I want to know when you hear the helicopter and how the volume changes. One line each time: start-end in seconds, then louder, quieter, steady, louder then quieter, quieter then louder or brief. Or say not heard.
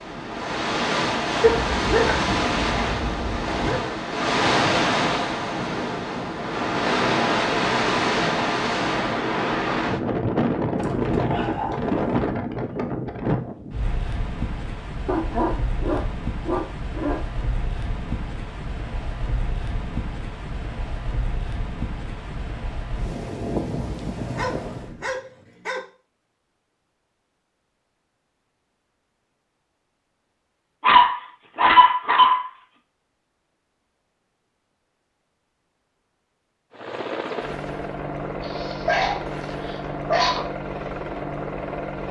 36.7-42.0 steady.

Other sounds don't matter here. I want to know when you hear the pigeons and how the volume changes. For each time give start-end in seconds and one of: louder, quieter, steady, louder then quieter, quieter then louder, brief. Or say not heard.
not heard.